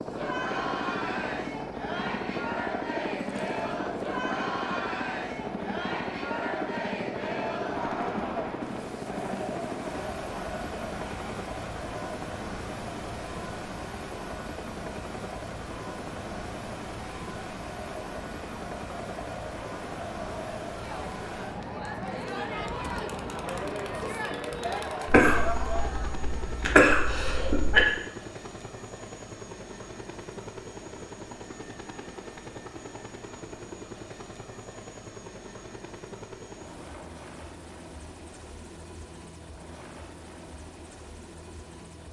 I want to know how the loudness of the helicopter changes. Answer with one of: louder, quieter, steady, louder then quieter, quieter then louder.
quieter.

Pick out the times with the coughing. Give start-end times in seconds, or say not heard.
25.1-27.9.